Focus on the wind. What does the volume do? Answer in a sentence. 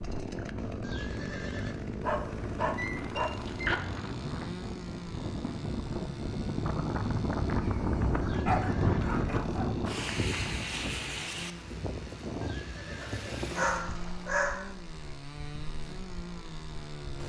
The loudness of the wind goes up, then down.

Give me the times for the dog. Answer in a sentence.
You can hear the dog from 2.0 to 3.8 s, from 8.3 to 9.7 s and from 13.0 to 14.7 s.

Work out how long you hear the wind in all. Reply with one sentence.
The wind can be heard for 17 seconds in total.